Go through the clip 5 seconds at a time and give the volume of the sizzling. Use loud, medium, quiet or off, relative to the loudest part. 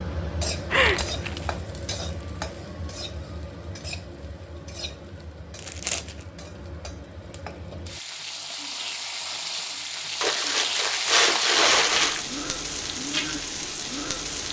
medium, medium, loud.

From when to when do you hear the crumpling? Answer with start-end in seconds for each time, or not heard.
0.7-1.5, 5.6-6.1, 10.2-12.2.